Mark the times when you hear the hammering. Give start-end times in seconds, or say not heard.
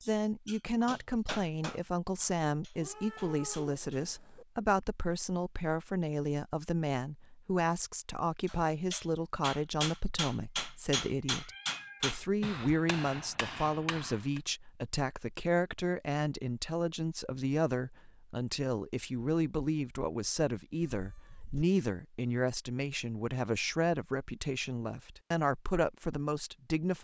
0.0-4.0, 8.4-14.4.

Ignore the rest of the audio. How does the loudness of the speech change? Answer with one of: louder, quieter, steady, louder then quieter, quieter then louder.
steady.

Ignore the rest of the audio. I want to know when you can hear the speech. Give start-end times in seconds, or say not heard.
0.1-26.9.